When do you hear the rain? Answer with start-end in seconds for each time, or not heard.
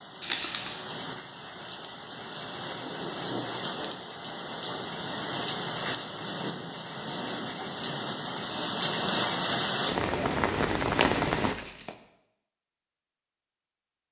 0.0-11.6.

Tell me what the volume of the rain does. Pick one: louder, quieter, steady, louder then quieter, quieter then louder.
louder.